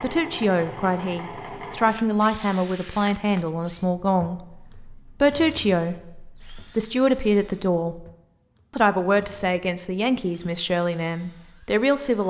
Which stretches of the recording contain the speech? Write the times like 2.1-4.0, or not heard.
0.0-8.1, 8.8-12.2.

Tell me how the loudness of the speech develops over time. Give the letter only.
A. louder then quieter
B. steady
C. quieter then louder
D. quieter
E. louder
B.